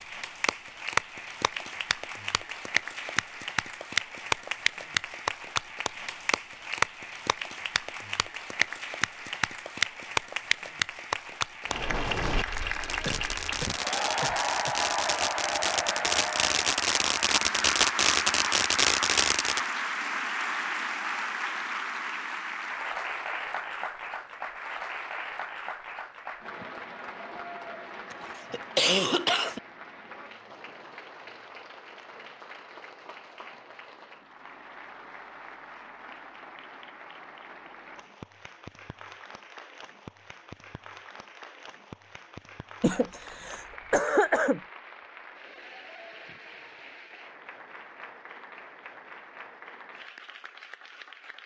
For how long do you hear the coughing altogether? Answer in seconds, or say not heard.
5 s.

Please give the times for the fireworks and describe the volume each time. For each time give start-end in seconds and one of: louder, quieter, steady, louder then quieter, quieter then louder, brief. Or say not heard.
11.7-19.7 louder.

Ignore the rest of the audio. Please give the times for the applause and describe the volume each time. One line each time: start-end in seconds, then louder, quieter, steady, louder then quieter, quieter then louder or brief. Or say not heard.
0.0-51.4 quieter.